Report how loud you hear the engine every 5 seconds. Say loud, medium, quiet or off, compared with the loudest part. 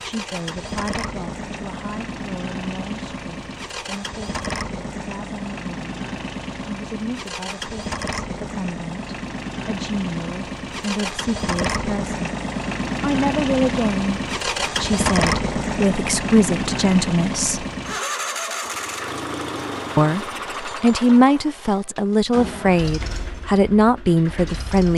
medium, medium, loud, loud, medium.